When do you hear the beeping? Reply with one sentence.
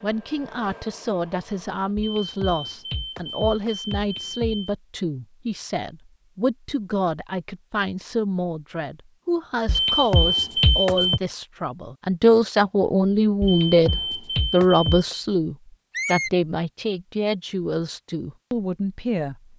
You can hear the beeping from 1.9 to 4.8 s, from 9.7 to 11.2 s and from 13.4 to 15.2 s.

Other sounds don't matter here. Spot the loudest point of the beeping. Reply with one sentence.
The loudest moment of the beeping is at 11 seconds.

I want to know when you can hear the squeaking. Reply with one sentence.
You can hear the squeaking from 15.9 to 16.3 s.